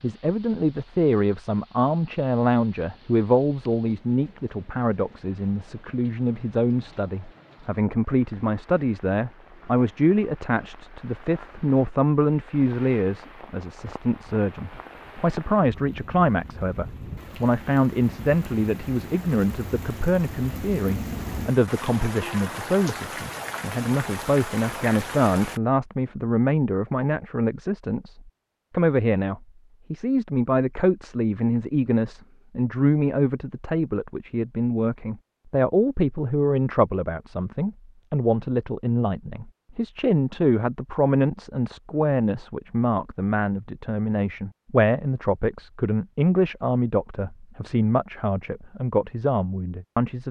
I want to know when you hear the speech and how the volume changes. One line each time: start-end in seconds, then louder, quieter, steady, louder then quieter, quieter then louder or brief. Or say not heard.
0.0-50.2 steady.